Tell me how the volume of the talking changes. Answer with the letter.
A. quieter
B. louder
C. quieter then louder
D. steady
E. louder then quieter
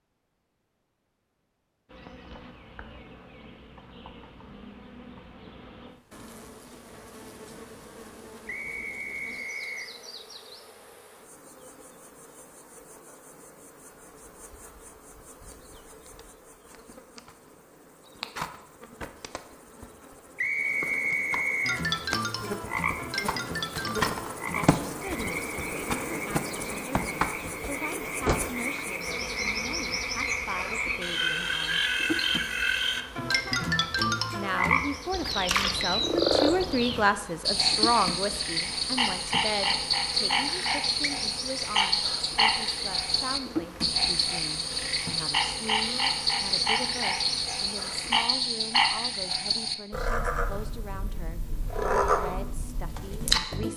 E.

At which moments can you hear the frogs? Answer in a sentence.
You can hear the frogs from 21.6 to 53.7 s.